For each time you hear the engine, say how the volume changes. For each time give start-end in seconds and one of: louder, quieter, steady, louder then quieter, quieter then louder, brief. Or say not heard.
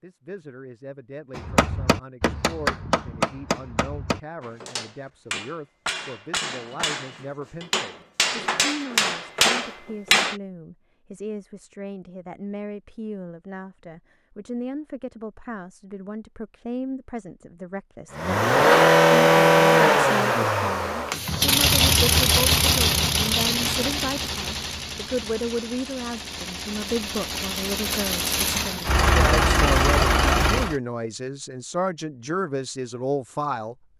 18.1-30.8 quieter then louder.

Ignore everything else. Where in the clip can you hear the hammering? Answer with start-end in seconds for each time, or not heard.
1.4-10.3.